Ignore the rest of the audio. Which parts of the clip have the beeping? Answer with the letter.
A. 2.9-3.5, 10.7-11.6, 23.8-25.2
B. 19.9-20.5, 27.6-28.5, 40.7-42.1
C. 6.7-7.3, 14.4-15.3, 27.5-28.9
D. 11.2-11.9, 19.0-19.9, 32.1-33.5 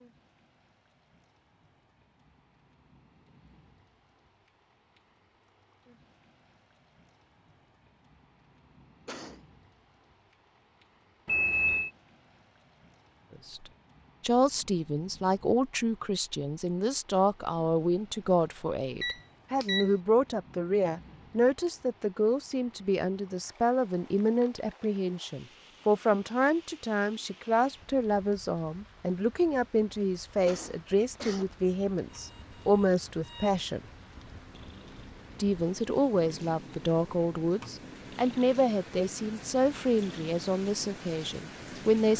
D.